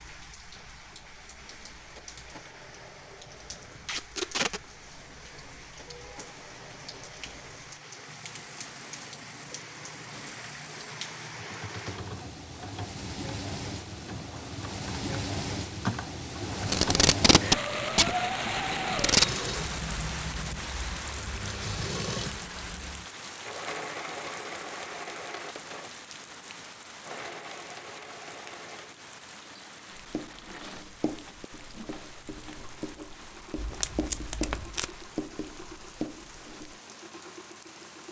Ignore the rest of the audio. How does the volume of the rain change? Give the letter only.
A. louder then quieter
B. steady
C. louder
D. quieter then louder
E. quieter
A.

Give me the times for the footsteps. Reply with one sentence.
The footsteps can't be heard in this clip.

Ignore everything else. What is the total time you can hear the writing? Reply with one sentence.
You can hear the writing for 7 seconds altogether.